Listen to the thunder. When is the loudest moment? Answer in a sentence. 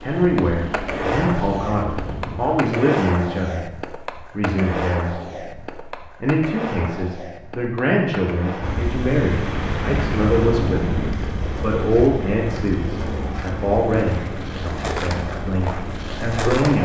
The loudest moment of the thunder is at 11 seconds.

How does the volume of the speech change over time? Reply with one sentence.
The volume of the speech stays about the same.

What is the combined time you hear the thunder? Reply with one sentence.
The thunder can be heard for 2 seconds in total.